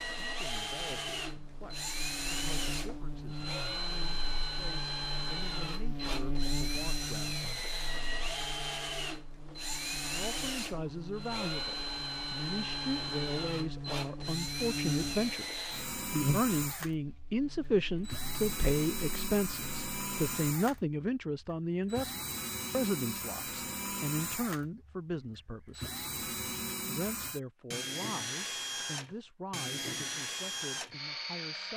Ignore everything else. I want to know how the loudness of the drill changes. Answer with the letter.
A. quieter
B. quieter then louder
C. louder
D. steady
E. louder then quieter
D.